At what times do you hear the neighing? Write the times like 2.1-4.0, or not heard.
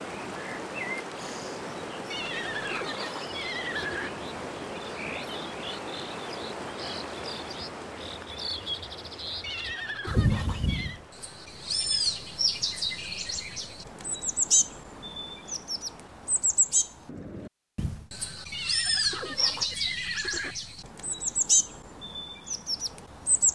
2.1-4.1, 9.4-11.0, 18.5-20.6.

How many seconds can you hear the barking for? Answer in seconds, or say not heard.
not heard.